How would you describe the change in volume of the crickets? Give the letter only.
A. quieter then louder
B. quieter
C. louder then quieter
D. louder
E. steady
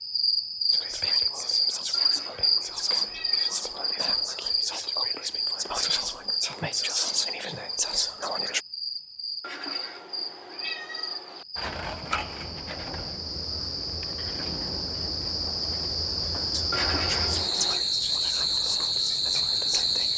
A.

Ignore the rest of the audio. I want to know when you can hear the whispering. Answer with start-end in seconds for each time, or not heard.
0.7-8.6, 16.5-20.1.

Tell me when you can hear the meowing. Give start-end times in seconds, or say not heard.
1.9-4.0, 9.4-11.4, 16.7-17.9.